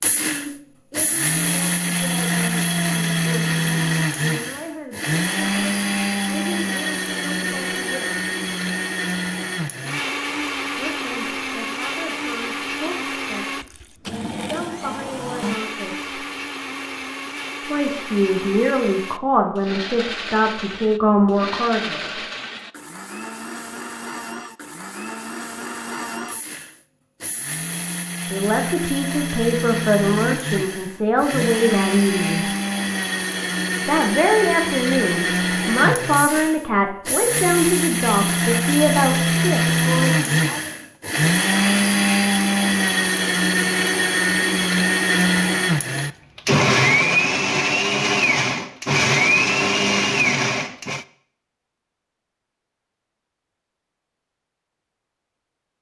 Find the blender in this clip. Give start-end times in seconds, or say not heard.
0.0-51.0.